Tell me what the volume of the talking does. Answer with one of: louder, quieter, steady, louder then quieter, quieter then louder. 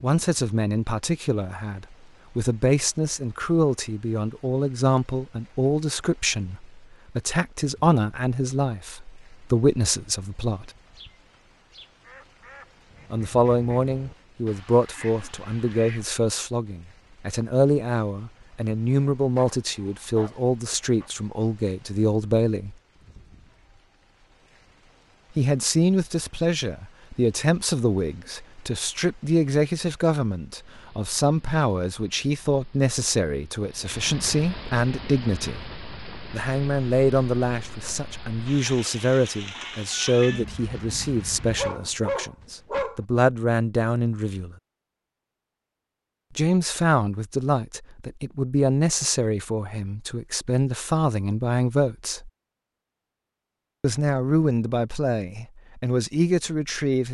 steady.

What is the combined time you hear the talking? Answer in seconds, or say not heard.
48 s.